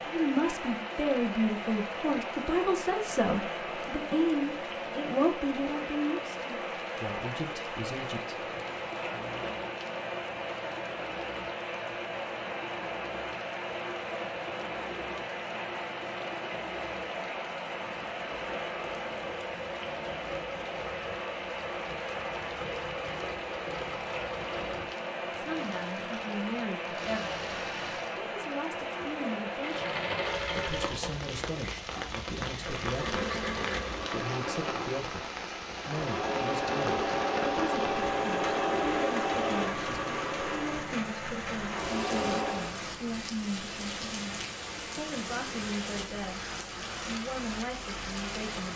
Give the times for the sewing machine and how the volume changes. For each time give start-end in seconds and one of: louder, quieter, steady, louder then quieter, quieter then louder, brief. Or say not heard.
8.3-42.8 louder.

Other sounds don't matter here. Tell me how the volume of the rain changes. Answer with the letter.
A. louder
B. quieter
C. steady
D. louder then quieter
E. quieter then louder
C.